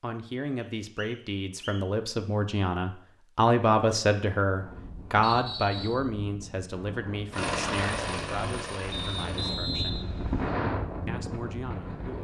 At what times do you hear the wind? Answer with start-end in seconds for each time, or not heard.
4.5-12.1.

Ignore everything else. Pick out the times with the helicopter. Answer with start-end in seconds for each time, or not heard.
7.3-9.6.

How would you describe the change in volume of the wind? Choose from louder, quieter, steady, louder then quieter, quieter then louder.
louder.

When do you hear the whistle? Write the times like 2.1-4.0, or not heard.
0.6-1.9, 5.2-6.0, 8.9-10.6.